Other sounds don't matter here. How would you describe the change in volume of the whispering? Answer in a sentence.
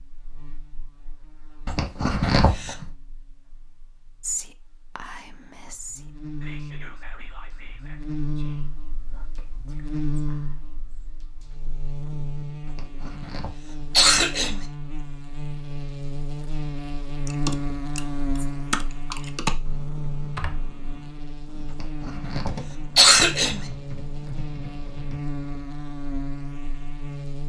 The loudness of the whispering goes down.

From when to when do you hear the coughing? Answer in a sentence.
The coughing can be heard from 1.6 to 2.8 s, from 12.7 to 14.7 s and from 21.6 to 23.6 s.